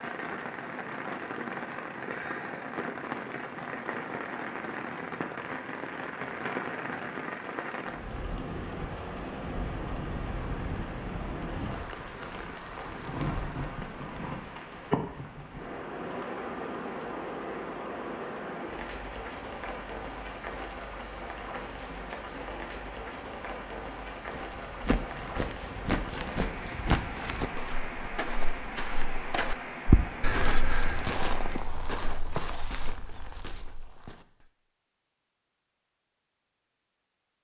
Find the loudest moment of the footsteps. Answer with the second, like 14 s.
30 s.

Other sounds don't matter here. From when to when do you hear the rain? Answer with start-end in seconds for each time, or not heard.
0.0-31.7.